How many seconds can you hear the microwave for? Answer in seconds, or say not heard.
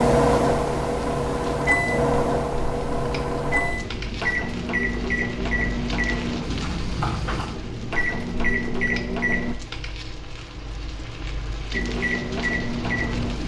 11 s.